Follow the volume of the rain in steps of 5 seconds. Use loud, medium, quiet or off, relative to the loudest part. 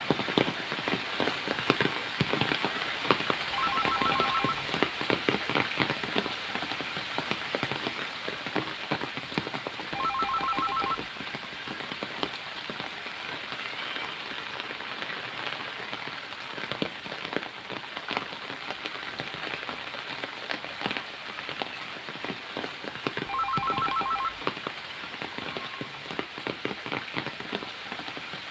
loud, loud, medium, medium, medium, medium.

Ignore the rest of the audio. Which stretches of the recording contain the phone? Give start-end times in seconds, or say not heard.
3.5-4.7, 9.9-11.1, 23.2-24.4.